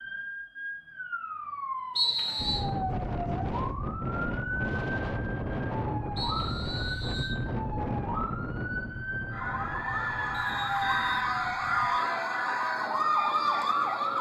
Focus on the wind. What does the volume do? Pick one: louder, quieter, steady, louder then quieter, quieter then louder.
quieter.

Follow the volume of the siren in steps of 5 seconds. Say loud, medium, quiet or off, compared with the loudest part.
medium, medium, loud.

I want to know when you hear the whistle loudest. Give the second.
2 s.